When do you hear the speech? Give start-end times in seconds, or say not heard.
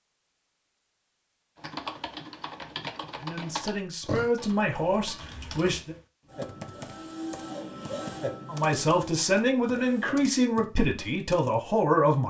3.2-6.0, 8.4-12.2.